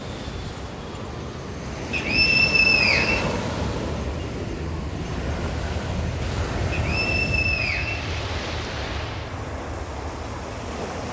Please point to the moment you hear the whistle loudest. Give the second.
3 s.